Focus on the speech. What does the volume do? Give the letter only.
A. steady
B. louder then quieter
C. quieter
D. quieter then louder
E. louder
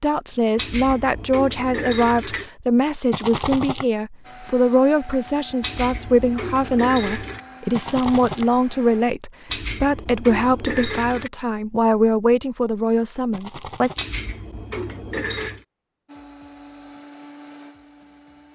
A.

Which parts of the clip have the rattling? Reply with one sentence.
The rattling can be heard from 3.1 to 3.9 s, from 7.7 to 8.5 s and from 13.3 to 14.1 s.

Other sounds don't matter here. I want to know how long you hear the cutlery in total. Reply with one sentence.
You can hear the cutlery for 7 seconds altogether.